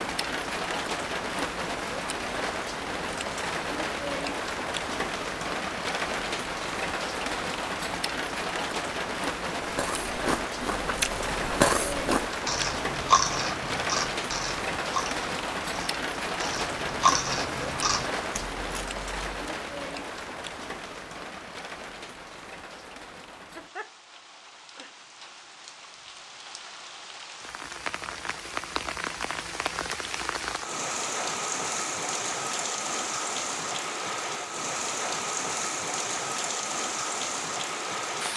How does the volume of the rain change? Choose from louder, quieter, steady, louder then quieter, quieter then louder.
quieter then louder.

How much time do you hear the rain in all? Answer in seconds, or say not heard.
38 s.